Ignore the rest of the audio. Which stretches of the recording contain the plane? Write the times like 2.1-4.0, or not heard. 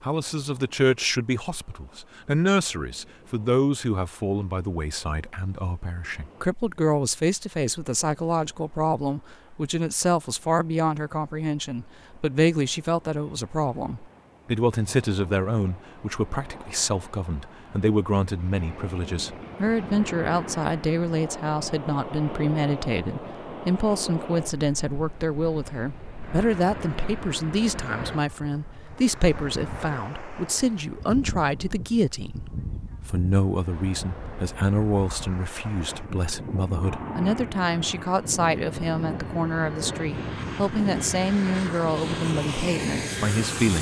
36.8-43.7.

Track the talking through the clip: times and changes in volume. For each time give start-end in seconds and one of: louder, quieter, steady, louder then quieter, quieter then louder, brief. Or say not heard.
0.0-43.7 steady.